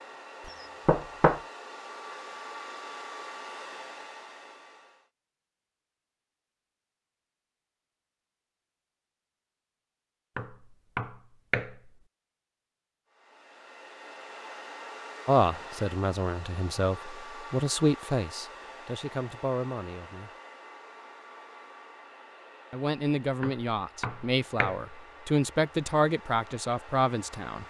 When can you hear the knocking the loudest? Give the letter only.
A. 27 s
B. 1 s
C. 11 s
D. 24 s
B.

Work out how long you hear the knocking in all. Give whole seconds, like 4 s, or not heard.
4 s.